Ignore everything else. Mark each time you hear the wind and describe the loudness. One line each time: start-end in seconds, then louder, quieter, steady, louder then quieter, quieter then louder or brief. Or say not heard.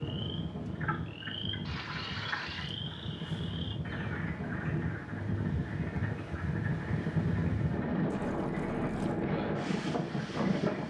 0.0-10.8 louder.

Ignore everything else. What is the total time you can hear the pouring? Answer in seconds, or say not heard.
2 s.